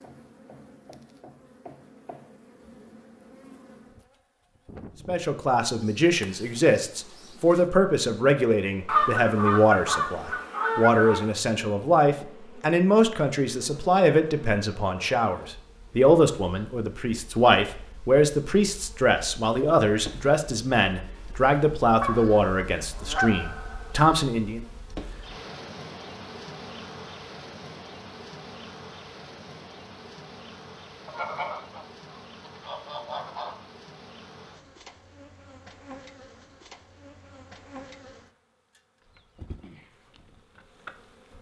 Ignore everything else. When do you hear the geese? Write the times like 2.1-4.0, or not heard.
8.8-11.3, 22.0-24.1, 31.1-33.5.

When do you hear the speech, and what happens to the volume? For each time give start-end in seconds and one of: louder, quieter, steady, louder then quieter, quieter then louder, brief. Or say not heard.
5.0-24.6 steady.